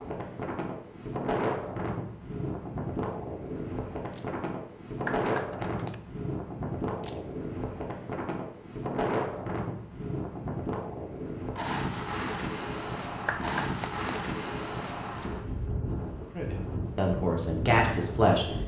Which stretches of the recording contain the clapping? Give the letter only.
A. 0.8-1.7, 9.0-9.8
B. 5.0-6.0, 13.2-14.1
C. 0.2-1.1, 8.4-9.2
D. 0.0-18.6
B.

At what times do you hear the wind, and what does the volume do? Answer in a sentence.
You can hear the wind from 0.0 to 18.6 s, at a steady volume.